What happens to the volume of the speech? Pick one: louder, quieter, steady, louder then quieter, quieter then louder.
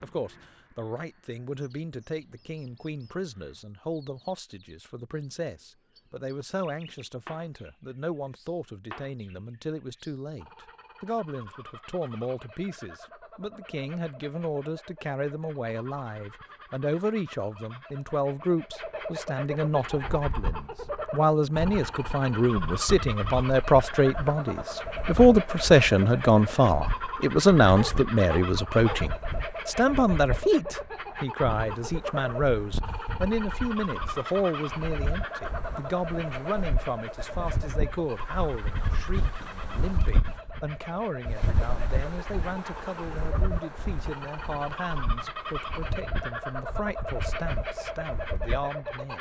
louder then quieter.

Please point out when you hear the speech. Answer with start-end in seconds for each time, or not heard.
0.0-49.1.